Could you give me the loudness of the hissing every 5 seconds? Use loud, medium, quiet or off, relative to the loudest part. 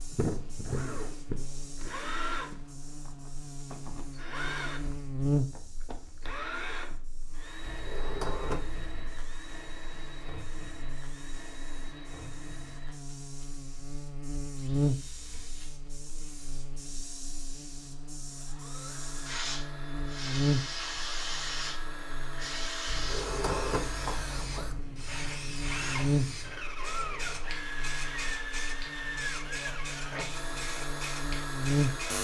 quiet, quiet, quiet, medium, loud, loud, loud.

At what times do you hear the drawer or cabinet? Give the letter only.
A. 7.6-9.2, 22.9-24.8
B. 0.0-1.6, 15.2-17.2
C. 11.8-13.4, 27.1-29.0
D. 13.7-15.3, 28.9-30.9
A.